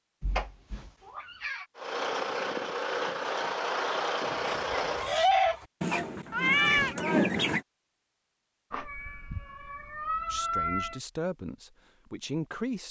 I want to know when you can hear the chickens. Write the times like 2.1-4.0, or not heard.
4.2-7.6.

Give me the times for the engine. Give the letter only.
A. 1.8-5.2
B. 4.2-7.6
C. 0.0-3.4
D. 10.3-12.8
A.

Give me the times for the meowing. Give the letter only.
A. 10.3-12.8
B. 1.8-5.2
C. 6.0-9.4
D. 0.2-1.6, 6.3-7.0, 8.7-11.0
D.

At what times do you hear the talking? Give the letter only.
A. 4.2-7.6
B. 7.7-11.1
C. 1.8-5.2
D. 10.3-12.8
D.